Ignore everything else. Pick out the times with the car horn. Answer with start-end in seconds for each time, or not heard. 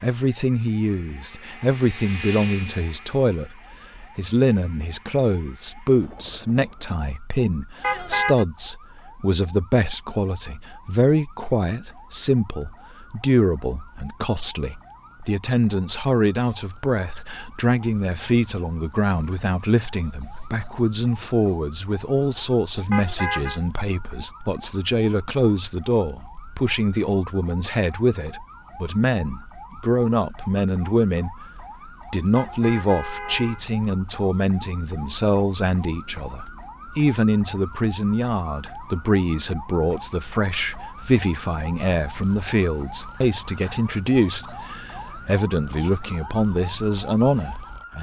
7.8-8.4, 22.9-23.6, 32.4-33.6.